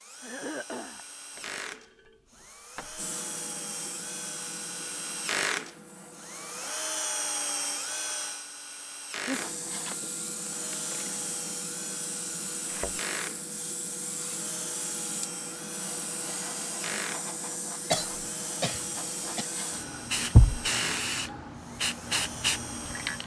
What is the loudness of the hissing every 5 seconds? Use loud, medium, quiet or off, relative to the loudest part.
medium, medium, medium, medium, loud.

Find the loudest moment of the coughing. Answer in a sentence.
The loudest moment of the coughing is at 18 seconds.